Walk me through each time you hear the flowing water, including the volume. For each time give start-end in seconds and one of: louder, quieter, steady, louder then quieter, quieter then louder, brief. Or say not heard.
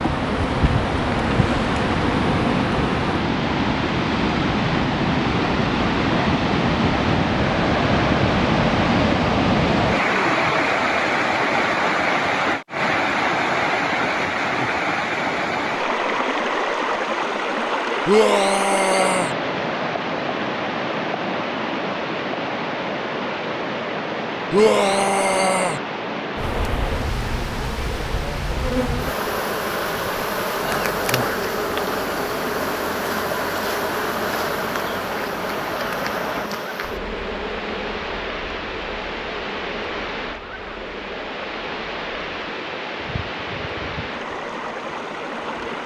0.0-45.8 quieter.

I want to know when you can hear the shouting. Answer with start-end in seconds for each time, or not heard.
18.1-19.4, 24.5-25.8.